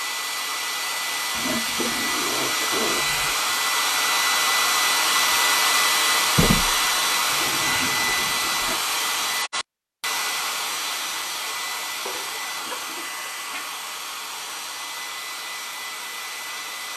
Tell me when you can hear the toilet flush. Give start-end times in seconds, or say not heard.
1.4-3.4, 6.2-8.8, 12.0-13.8.